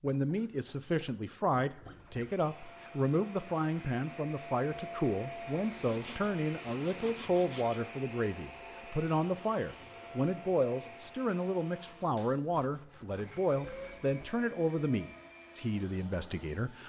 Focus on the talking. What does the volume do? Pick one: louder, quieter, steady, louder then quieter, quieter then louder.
steady.